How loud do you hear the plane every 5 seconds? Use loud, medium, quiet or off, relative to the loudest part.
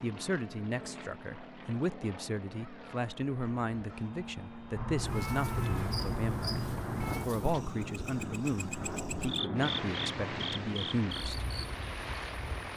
medium, loud, loud.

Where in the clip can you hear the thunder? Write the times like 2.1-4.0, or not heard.
6.7-7.2.